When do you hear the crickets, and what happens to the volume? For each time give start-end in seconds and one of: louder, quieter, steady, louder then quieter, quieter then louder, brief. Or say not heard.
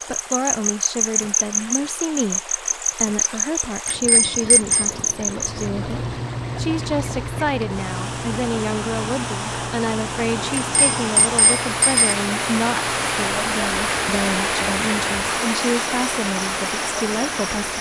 0.0-17.7 quieter.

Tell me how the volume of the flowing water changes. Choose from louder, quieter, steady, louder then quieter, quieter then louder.
louder.